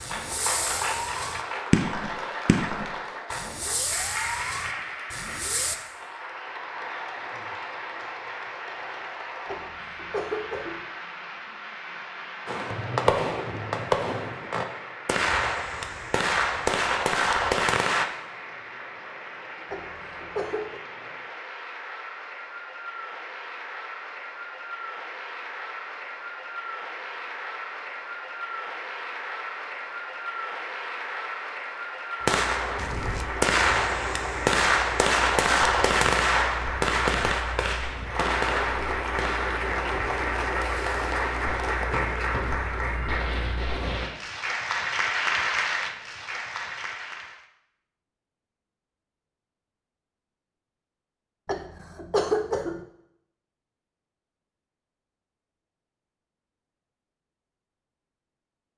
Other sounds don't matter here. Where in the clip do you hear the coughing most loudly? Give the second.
52 s.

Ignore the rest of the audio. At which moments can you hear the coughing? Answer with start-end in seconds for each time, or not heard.
9.4-10.8, 19.7-20.8, 51.5-52.9.